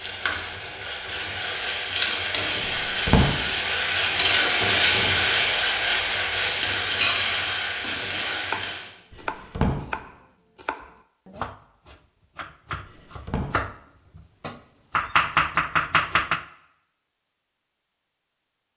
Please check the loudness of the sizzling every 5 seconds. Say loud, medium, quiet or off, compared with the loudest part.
loud, loud, off, off.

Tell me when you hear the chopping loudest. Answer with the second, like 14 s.
15 s.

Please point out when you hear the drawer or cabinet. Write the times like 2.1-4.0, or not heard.
2.6-3.3, 9.1-9.8, 12.8-13.5.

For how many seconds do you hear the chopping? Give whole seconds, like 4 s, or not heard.
8 s.